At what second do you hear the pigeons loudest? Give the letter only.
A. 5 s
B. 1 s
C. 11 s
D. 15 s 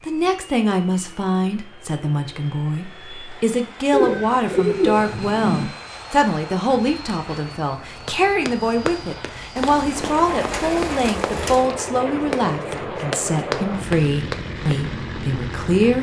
A.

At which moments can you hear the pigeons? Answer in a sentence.
The pigeons can be heard from 3.9 to 5.7 s and from 9.6 to 11.7 s.